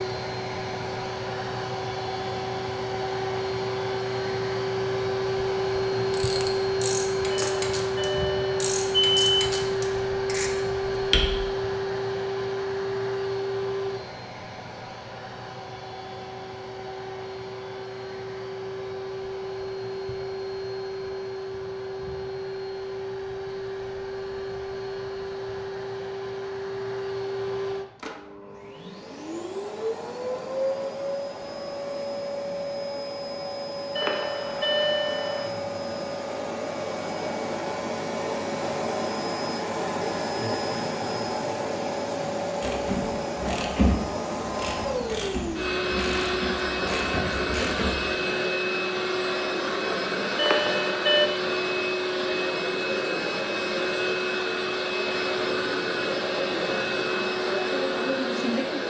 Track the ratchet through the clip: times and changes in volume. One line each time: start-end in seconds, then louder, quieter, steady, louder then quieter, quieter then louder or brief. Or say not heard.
6.0-11.4 steady
42.6-48.1 quieter then louder.